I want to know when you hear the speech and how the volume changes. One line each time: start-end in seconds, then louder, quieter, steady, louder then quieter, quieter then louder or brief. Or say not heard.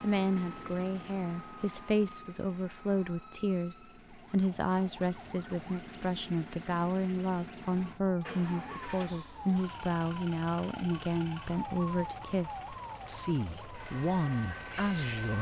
0.0-15.3 steady.